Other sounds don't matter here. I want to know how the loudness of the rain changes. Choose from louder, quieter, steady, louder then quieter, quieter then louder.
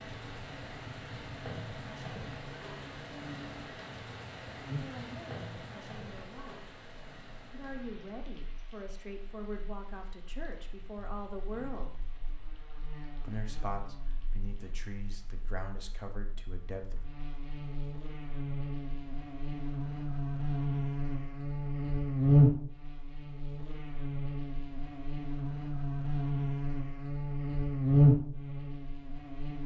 quieter.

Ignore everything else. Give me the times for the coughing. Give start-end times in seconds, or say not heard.
not heard.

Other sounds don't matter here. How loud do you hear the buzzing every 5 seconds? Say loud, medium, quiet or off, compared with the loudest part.
quiet, quiet, quiet, quiet, loud, loud.